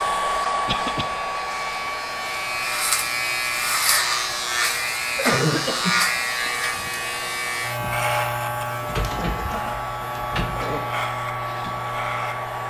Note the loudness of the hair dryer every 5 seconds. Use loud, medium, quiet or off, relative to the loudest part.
loud, medium, loud.